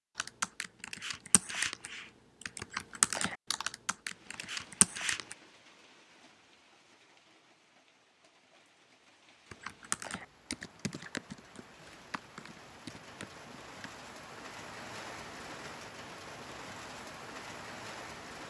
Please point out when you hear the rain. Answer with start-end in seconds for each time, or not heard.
4.0-18.4.